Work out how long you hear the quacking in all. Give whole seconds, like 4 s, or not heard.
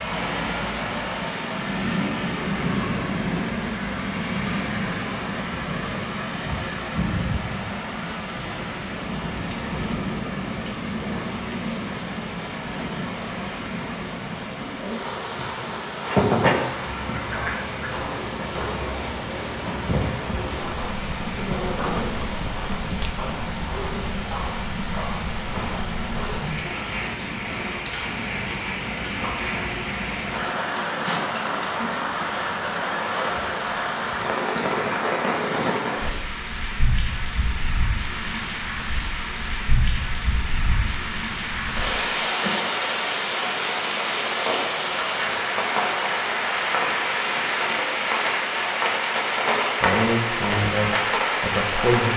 2 s.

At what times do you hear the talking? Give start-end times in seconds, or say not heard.
49.8-52.1.